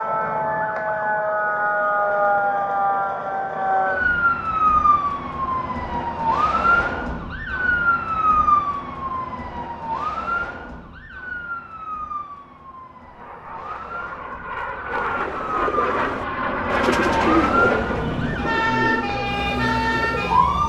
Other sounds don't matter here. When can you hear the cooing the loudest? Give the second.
17 s.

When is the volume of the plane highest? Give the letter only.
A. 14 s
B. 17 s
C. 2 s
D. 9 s
B.